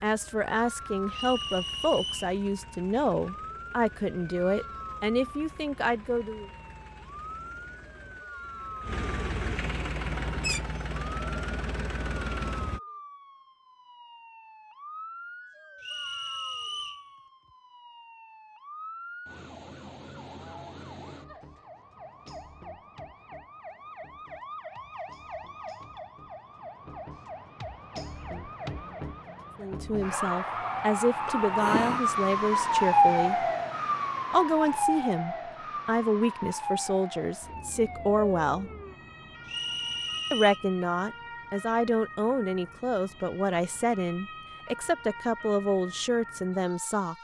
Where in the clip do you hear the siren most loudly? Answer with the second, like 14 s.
33 s.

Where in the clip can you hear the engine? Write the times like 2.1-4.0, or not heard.
0.0-12.8.